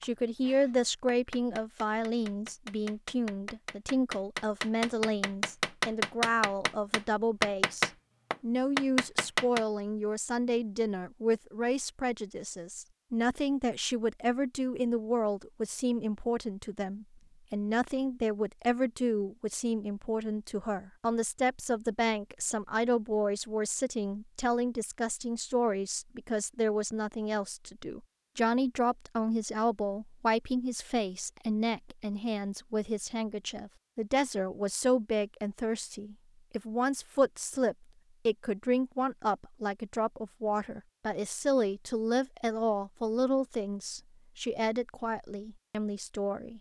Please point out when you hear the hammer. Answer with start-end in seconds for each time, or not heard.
0.0-9.7.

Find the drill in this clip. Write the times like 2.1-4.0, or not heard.
not heard.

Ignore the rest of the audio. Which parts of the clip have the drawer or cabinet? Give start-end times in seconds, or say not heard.
not heard.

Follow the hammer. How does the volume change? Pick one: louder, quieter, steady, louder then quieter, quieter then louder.
louder.